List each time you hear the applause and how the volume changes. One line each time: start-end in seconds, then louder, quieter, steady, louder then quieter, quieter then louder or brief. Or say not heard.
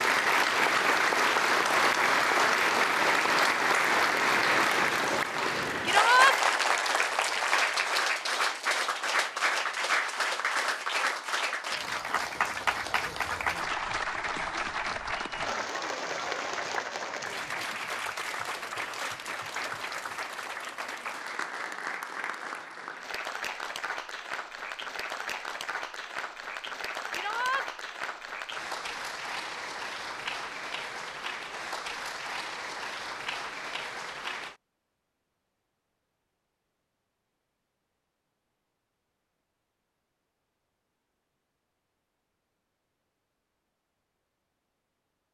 0.0-34.5 quieter.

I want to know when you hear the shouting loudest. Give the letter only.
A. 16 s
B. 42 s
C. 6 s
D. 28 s
C.